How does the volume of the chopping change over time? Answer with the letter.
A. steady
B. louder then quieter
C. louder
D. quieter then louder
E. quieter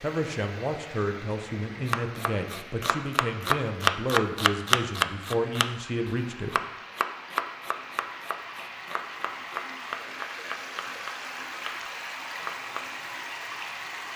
E.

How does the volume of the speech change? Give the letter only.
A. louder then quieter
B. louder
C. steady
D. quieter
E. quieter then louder
C.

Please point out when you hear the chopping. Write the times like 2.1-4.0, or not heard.
1.9-12.9.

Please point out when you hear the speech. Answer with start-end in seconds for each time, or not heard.
0.0-6.6.